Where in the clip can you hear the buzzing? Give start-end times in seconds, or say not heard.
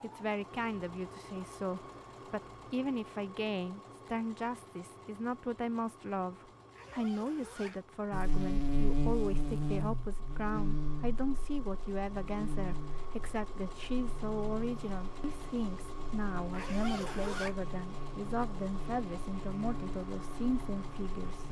8.1-21.4.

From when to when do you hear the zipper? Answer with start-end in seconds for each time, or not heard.
6.7-7.8, 16.5-17.6.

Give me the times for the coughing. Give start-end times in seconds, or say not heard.
not heard.